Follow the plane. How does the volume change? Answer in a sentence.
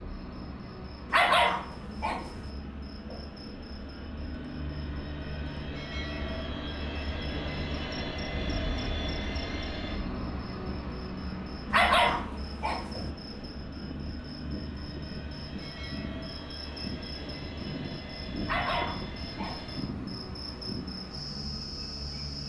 The loudness of the plane goes up, then down.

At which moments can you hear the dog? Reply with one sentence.
You can hear the dog from 1.1 to 2.5 s, from 11.7 to 13.1 s and from 18.4 to 19.8 s.